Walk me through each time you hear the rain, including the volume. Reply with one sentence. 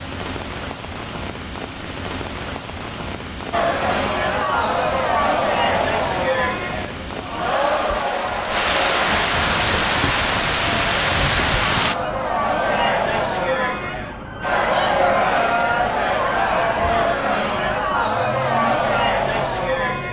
You can hear the rain from 0.0 to 11.9 s, getting louder.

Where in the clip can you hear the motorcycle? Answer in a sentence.
The motorcycle can't be heard in this clip.